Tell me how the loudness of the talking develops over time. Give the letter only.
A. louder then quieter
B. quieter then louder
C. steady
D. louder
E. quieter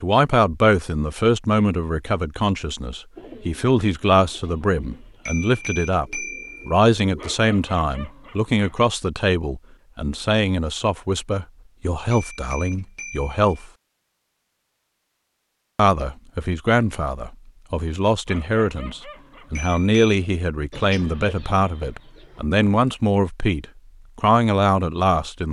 C.